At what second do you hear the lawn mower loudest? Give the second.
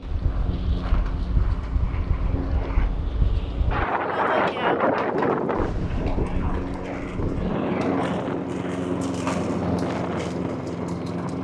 9 s.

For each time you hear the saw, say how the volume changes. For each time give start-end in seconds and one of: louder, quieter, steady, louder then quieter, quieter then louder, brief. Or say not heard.
not heard.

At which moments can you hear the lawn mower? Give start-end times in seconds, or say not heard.
0.0-11.3.